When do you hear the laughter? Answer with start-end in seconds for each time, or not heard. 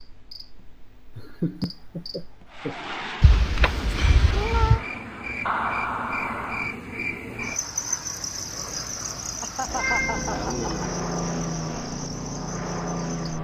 1.1-2.8, 5.5-6.8, 9.4-10.9.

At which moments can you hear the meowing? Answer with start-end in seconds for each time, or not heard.
3.2-4.8, 9.7-10.9.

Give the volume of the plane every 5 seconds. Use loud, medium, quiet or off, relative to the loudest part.
medium, quiet, loud.